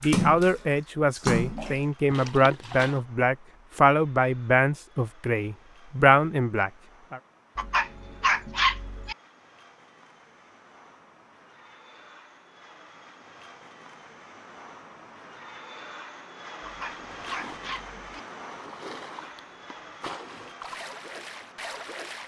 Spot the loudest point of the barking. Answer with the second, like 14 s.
9 s.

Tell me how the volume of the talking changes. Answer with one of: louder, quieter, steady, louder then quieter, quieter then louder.
steady.